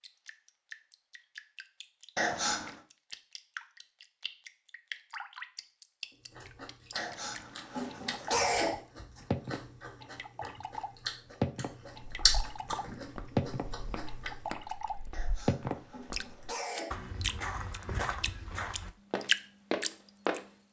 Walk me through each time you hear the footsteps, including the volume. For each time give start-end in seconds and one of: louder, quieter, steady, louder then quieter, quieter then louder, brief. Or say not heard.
12.0-20.4 louder.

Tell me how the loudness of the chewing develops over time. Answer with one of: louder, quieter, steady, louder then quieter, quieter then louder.
louder then quieter.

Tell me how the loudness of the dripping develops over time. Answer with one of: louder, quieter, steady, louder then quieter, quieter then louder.
louder.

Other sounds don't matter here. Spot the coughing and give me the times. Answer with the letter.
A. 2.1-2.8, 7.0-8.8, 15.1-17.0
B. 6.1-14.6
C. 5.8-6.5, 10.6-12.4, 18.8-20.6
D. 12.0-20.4
A.